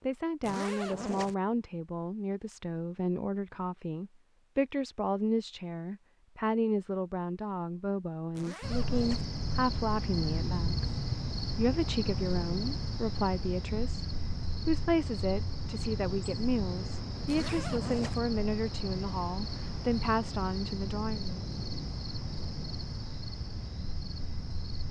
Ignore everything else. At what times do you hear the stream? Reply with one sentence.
You can't hear the stream here.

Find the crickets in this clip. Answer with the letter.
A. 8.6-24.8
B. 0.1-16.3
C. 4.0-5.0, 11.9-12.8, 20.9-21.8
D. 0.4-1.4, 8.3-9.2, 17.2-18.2
A.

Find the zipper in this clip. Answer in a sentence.
You can hear the zipper from 0.4 to 1.4 s, from 8.3 to 9.2 s and from 17.2 to 18.2 s.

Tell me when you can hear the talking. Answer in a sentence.
You can hear the talking from 0.0 to 10.9 s and from 11.6 to 21.4 s.